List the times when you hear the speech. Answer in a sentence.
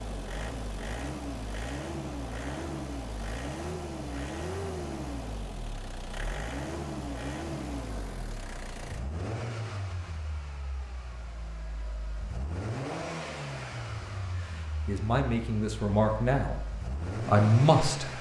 The speech can be heard from 14.3 to 16.6 s and from 17.2 to 18.1 s.